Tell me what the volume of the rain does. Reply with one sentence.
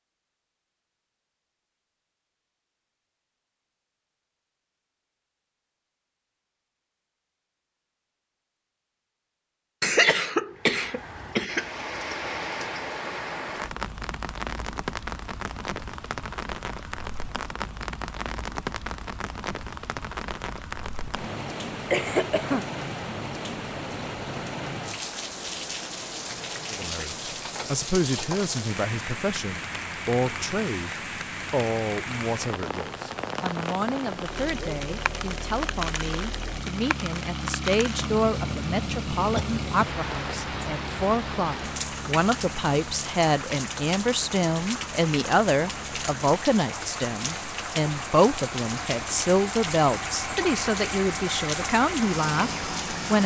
The volume of the rain stays about the same.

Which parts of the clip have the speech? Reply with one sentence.
The speech can be heard from 26.7 to 53.2 s.